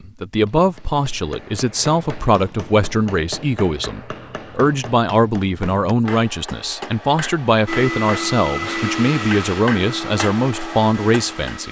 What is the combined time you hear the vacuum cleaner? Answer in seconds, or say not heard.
4 s.